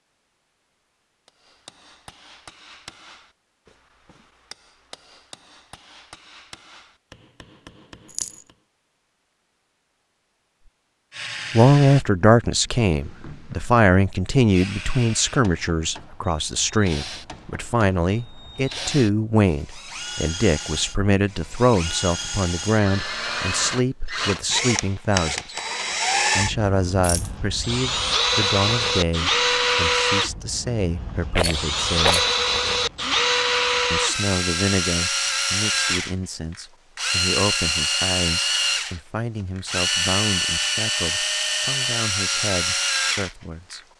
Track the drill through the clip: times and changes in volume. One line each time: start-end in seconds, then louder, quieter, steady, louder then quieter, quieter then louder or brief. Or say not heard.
11.1-43.8 louder.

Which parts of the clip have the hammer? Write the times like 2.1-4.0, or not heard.
1.2-8.6.